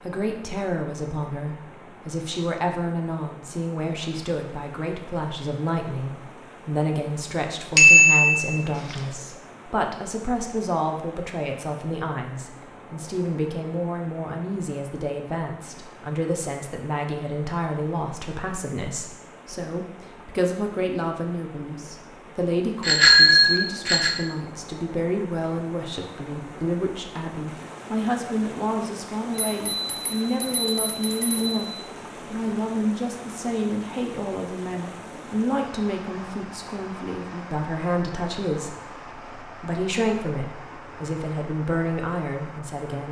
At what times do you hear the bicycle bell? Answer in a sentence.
You can hear the bicycle bell from 7.8 to 8.6 s, from 22.8 to 24.1 s and from 29.4 to 31.6 s.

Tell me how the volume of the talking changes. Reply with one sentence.
The volume of the talking stays about the same.